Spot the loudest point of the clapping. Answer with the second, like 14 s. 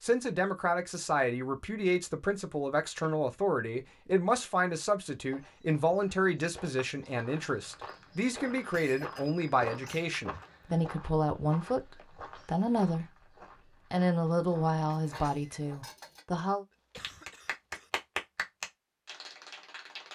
18 s.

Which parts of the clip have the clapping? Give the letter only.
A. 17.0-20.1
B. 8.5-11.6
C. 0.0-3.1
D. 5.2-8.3
A.